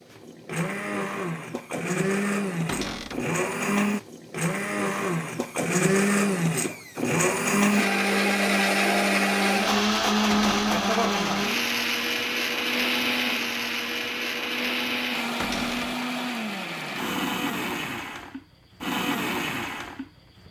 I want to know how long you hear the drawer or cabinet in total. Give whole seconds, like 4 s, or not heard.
2 s.